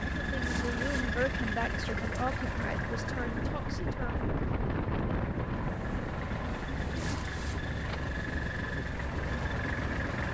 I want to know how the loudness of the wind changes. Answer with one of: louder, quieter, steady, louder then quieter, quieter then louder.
louder then quieter.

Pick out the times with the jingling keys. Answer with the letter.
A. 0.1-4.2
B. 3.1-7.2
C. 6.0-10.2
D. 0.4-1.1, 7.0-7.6
D.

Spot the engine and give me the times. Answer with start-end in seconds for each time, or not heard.
0.0-10.3.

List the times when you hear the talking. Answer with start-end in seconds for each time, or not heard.
0.1-4.2.